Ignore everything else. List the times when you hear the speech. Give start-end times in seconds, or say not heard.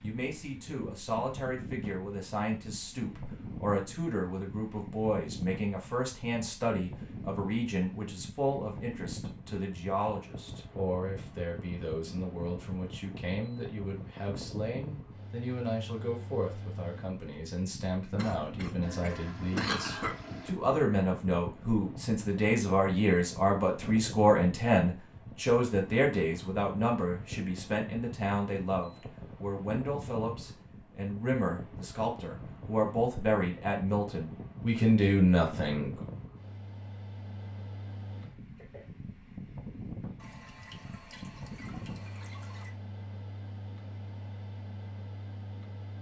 0.0-36.0.